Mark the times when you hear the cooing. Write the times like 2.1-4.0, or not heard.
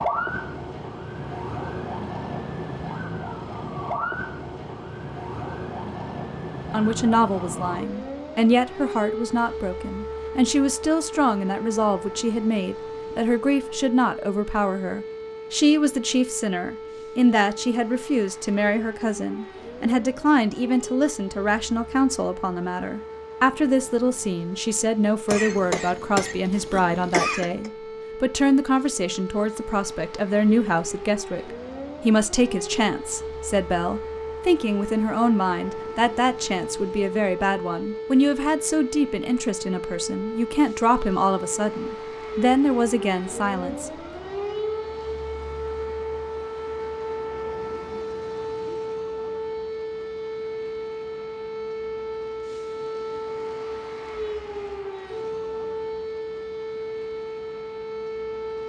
not heard.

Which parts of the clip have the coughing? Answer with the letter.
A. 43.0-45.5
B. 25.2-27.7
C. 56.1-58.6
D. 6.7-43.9
B.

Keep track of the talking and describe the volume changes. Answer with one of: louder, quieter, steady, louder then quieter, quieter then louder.
steady.